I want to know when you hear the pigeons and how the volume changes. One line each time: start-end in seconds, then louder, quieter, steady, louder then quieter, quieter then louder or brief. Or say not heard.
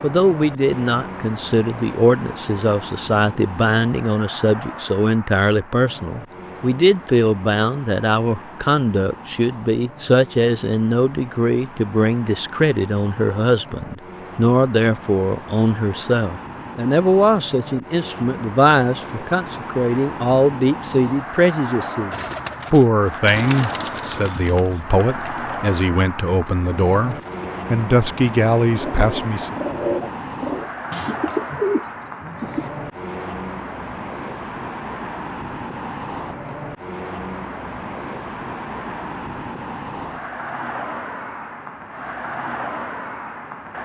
22.1-32.7 quieter then louder.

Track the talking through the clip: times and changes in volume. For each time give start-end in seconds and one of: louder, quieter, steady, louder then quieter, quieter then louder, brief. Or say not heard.
0.0-29.6 steady.